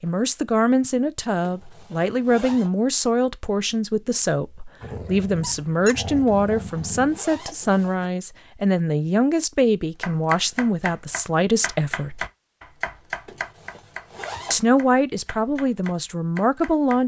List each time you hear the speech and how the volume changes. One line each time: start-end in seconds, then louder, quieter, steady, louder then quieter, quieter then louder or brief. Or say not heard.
0.0-12.2 steady
14.5-17.0 brief.